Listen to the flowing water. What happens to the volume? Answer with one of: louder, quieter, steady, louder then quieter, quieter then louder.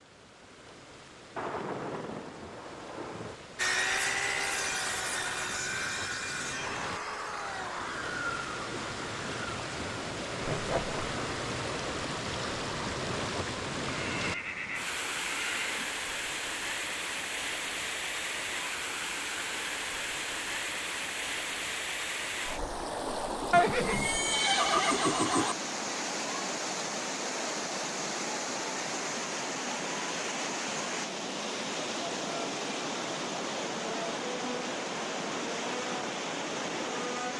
louder.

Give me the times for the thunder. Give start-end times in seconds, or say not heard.
1.4-3.4.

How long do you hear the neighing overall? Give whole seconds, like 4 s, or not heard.
4 s.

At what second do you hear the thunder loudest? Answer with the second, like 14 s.
2 s.